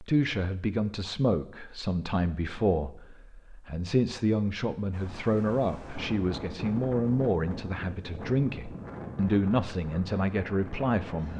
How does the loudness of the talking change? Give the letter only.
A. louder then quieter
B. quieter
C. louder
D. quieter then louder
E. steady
E.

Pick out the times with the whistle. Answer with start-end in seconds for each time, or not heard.
not heard.